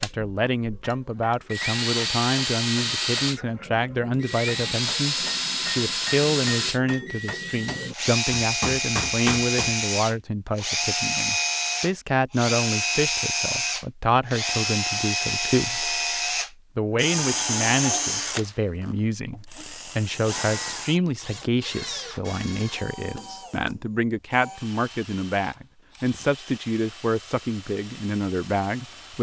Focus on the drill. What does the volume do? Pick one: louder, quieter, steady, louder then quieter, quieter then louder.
quieter.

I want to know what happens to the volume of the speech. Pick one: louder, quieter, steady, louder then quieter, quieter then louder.
steady.